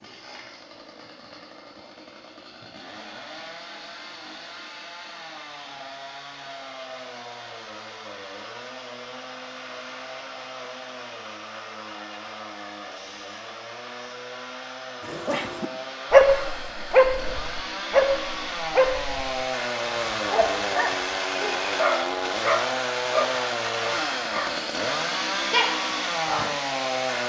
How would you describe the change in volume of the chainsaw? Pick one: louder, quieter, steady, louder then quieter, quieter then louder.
louder.